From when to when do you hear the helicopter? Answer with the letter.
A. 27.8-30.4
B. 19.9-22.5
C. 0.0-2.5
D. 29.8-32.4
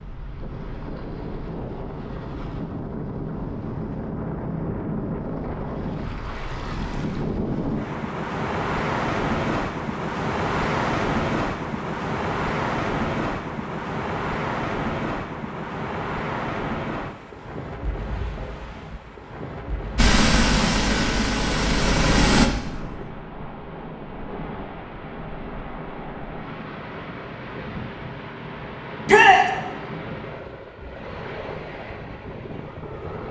B.